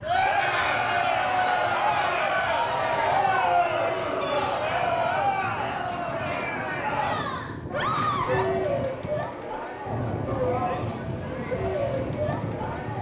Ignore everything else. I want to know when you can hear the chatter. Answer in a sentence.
The chatter can be heard from 0.0 to 12.9 s.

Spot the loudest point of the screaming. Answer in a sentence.
The volume of the screaming peaks at 8 seconds.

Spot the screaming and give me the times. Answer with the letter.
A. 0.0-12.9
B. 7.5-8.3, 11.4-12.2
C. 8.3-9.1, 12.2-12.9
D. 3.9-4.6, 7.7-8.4
D.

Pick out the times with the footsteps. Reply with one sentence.
The footsteps can't be heard in this clip.